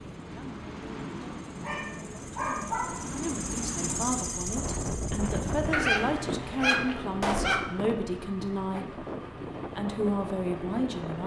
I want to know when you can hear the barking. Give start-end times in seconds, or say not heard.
1.6-3.1, 5.7-7.7.